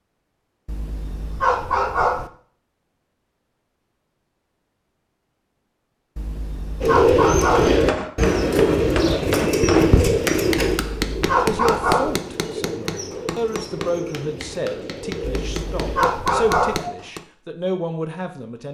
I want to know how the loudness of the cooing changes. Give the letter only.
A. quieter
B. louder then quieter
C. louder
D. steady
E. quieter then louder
A.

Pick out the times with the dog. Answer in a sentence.
The dog can be heard from 0.7 to 2.3 s, from 6.2 to 7.8 s, from 10.8 to 12.2 s and from 15.2 to 16.9 s.